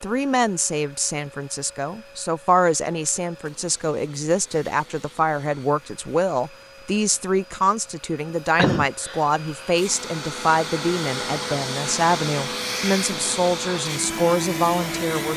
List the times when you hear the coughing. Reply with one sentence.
The coughing can be heard from 8.6 to 9.2 s.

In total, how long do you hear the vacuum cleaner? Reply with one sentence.
You can hear the vacuum cleaner for 15 seconds altogether.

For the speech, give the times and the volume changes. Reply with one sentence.
The speech can be heard from 0.0 to 15.3 s, at a steady volume.